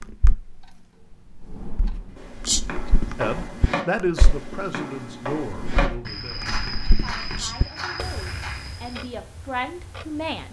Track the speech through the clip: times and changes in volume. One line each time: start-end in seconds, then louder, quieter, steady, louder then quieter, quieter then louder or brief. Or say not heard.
3.1-10.4 quieter then louder.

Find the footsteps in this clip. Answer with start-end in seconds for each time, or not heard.
2.1-9.1.